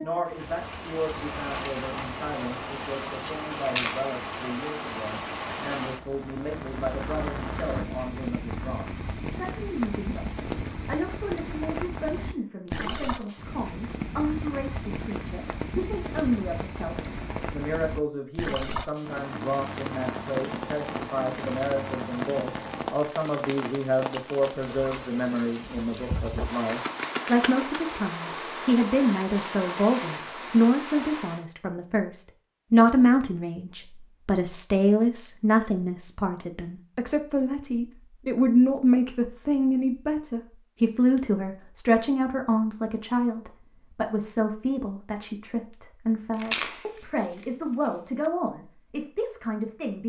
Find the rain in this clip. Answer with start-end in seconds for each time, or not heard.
0.0-31.4.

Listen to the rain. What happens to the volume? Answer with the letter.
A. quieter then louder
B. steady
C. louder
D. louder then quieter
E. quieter
B.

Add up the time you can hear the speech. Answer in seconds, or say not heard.
50 s.